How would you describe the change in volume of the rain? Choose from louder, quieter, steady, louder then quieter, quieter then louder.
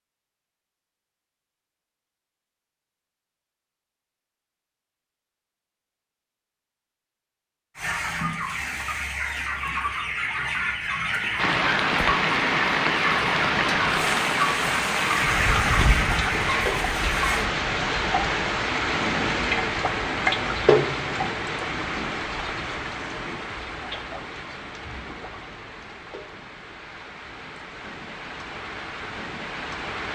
quieter.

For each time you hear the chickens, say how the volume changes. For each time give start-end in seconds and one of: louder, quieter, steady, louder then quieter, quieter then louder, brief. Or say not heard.
7.8-17.4 steady.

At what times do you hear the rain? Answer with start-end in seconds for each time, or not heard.
11.3-30.1.